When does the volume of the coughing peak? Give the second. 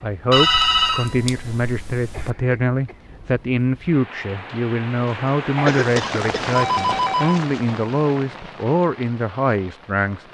6 s.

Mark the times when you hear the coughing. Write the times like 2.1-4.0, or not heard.
2.1-3.1, 5.7-6.5.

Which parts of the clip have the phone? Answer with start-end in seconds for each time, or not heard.
0.3-2.3, 5.5-7.5.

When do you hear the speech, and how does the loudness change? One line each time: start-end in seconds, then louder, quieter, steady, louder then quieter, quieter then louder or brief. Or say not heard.
0.0-10.2 steady.